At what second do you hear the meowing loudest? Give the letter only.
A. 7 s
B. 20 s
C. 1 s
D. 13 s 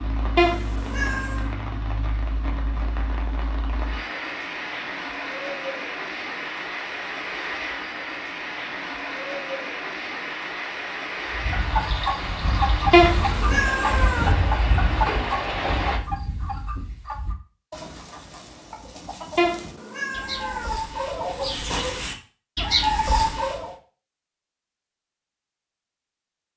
D.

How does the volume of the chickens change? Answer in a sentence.
The loudness of the chickens goes down, then up.